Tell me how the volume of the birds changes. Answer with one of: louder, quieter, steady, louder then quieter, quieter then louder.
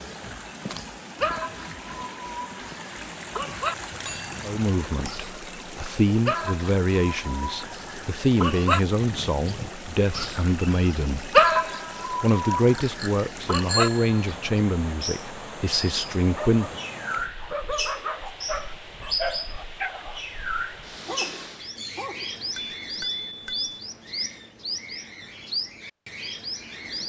louder then quieter.